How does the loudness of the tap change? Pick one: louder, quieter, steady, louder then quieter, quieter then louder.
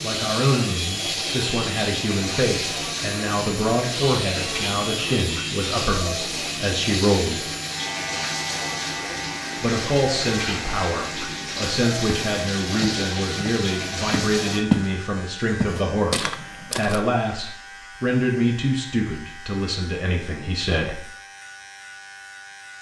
steady.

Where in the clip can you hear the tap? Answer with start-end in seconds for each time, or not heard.
0.0-14.7.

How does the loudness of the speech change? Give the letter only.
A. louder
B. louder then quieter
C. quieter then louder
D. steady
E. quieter
D.